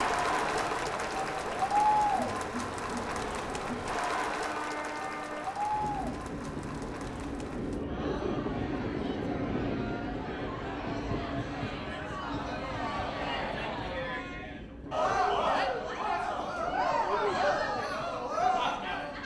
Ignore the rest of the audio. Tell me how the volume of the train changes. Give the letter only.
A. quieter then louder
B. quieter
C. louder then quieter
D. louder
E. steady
C.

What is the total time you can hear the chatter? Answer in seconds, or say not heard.
19 s.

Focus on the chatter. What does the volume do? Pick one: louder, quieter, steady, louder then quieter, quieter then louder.
quieter then louder.